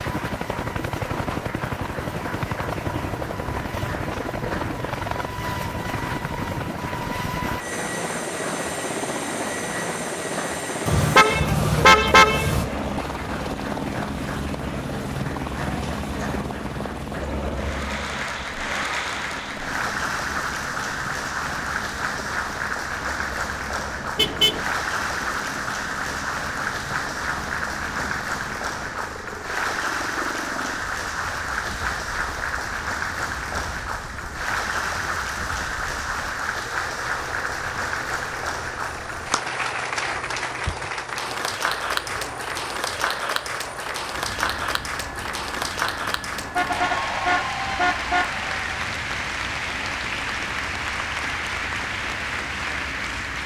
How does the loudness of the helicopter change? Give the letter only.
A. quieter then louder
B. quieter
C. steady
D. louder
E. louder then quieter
B.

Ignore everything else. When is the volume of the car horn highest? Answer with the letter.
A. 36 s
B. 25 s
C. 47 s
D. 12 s
D.